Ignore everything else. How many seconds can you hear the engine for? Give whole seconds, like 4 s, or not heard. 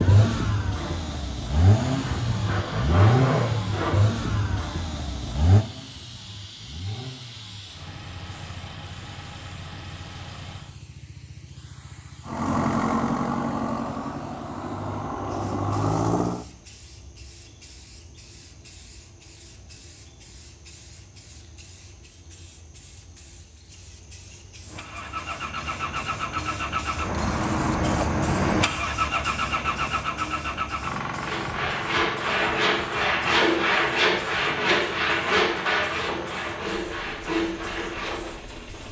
29 s.